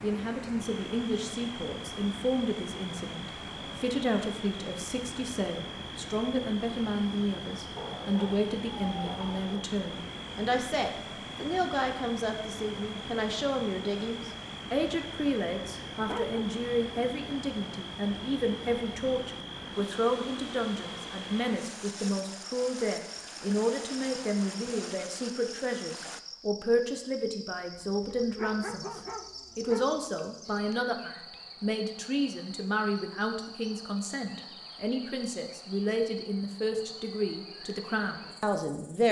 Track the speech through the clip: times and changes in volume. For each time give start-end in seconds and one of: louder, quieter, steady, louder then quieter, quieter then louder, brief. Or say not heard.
0.0-39.0 steady.